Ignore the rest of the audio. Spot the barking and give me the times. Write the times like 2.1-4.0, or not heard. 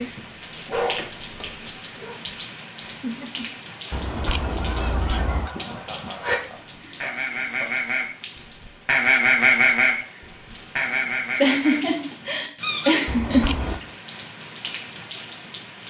0.0-2.1.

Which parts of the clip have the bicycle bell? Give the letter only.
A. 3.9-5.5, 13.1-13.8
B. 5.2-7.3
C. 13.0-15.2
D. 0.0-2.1
A.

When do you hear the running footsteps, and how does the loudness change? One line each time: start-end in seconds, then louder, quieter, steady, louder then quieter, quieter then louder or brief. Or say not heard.
not heard.